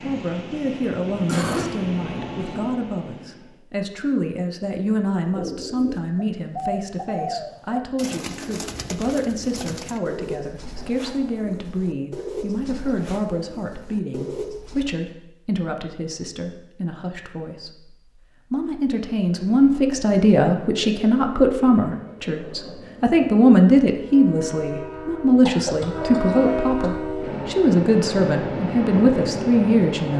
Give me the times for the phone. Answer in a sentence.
You can't hear the phone here.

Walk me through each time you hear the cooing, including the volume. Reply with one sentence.
The cooing can be heard from 5.2 to 15.0 s, getting quieter.